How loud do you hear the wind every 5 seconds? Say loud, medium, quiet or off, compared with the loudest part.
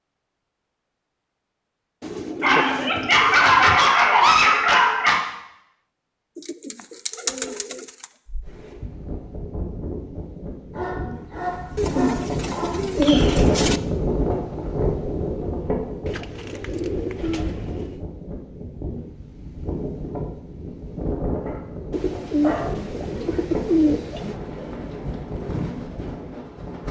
off, medium, loud, medium, medium, medium.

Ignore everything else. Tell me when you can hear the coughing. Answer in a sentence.
The coughing can't be heard in this clip.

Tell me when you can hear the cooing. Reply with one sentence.
You can hear the cooing from 2.0 to 3.8 s, from 6.3 to 8.1 s, from 11.8 to 13.8 s, from 16.1 to 18.0 s and from 21.9 to 24.4 s.